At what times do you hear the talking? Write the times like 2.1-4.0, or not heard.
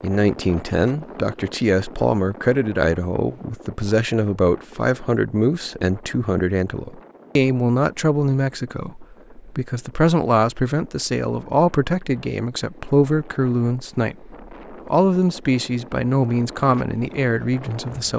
0.0-18.1.